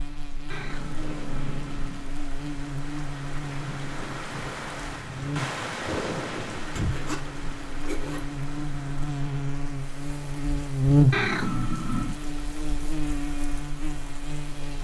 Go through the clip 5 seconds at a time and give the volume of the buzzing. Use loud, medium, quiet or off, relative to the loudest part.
medium, medium, loud.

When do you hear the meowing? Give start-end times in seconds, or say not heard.
0.5-2.1, 11.1-12.2.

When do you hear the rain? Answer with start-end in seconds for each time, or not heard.
0.0-14.7.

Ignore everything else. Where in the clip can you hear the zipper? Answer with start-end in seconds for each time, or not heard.
6.8-8.2.